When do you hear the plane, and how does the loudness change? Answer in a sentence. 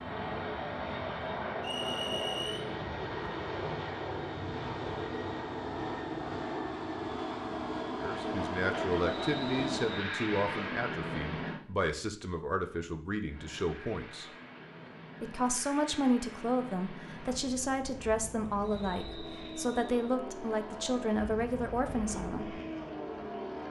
You can hear the plane from 0.0 to 11.6 s, at a steady volume; and from 13.2 to 23.6 s, getting louder.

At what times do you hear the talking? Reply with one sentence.
The talking can be heard from 8.0 to 14.2 s and from 15.2 to 22.6 s.